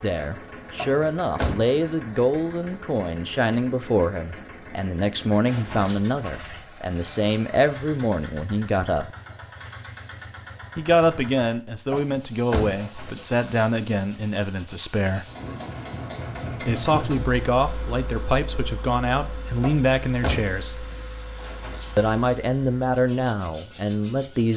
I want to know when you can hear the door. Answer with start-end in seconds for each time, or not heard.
0.8-1.6, 11.9-13.2, 19.6-20.9.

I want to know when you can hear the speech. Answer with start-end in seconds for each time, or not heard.
0.0-9.1, 10.8-15.2, 16.6-20.9, 21.9-24.5.